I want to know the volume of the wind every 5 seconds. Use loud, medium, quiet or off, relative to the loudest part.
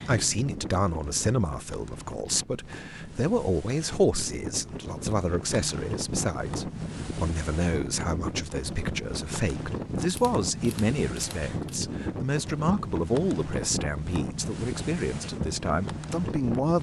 medium, loud, loud, loud.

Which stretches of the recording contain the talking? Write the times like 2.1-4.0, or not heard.
0.1-16.7.